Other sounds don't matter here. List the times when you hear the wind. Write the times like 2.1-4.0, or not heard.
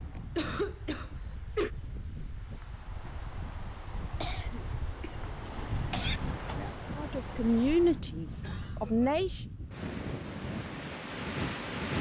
0.0-11.9.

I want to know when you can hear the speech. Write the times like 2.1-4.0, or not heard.
7.0-9.4.